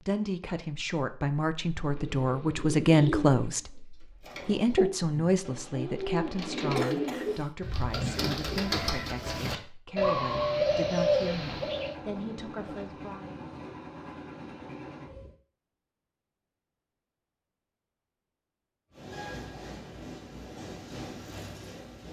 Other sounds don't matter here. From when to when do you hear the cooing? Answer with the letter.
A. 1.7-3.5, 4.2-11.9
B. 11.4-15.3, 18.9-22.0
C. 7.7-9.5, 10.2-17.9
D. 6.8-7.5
A.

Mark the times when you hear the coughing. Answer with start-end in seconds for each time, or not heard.
6.8-7.5.